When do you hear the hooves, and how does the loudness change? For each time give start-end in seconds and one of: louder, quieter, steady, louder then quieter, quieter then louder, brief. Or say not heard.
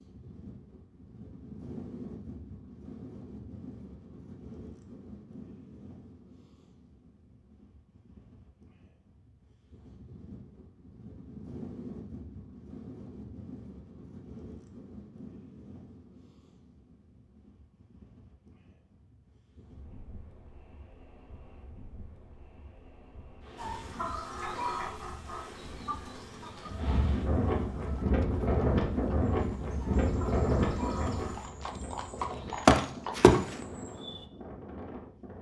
27.9-34.2 louder.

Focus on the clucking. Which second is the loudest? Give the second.
25 s.